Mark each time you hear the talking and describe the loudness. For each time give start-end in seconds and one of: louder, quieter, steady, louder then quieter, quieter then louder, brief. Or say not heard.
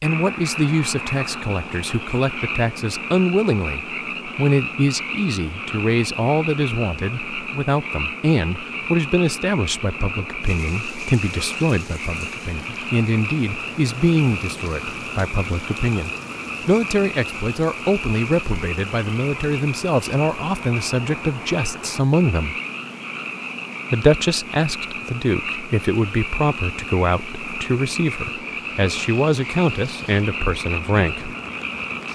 0.0-22.6 steady
23.9-31.4 steady.